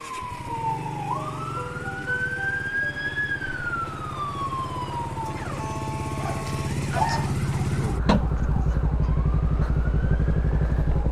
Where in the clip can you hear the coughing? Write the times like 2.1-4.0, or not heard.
8.1-8.8.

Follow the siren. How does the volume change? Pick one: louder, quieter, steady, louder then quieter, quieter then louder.
quieter.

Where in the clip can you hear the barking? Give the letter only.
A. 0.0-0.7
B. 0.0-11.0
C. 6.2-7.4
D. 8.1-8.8
C.